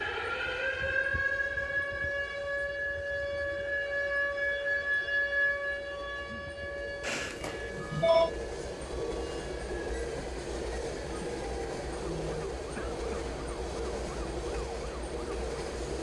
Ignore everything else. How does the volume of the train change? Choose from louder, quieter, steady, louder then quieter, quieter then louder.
louder.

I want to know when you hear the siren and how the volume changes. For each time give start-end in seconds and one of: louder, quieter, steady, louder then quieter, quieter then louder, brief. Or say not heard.
0.0-15.9 quieter.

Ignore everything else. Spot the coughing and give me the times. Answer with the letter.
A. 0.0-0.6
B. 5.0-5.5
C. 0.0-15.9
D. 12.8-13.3
D.